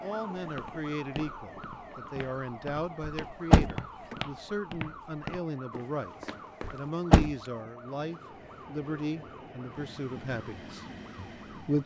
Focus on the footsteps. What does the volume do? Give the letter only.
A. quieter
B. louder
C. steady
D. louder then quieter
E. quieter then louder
D.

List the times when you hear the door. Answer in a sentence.
The door can be heard from 3.0 to 4.2 s and from 6.6 to 7.3 s.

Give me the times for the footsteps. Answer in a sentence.
You can hear the footsteps from 0.3 to 6.8 s.